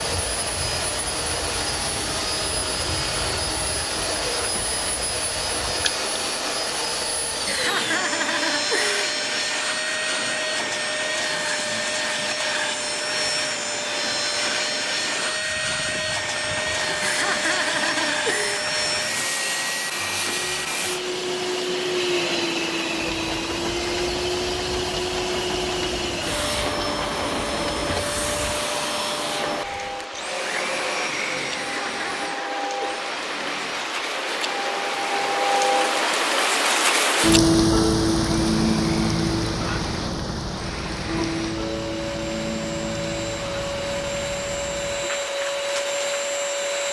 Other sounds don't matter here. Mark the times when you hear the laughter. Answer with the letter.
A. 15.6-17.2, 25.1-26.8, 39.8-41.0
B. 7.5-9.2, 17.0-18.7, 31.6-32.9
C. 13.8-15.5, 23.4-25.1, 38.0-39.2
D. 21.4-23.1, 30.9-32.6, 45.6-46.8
B.